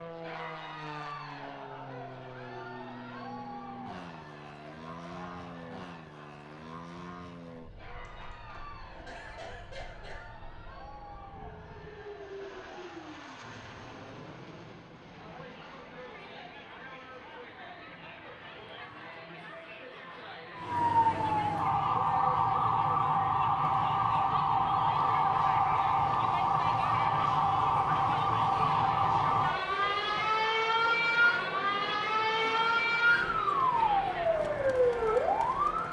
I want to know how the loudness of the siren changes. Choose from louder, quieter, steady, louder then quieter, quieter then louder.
steady.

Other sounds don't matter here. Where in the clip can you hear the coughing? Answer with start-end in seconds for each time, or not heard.
8.0-10.3.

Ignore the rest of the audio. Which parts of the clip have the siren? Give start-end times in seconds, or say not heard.
20.6-35.8.